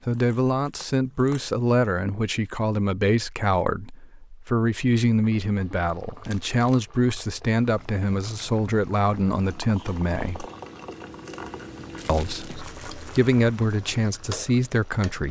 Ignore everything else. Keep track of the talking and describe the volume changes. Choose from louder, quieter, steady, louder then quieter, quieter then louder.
steady.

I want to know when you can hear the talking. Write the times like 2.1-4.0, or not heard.
0.1-10.4, 12.1-15.2.